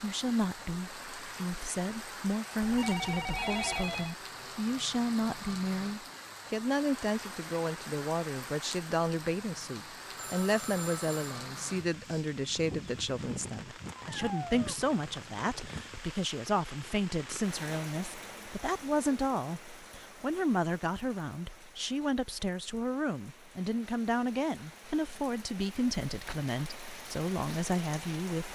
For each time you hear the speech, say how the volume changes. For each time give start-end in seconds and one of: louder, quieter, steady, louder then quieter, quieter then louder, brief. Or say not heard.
0.0-28.4 steady.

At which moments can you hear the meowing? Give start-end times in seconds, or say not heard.
13.9-14.8.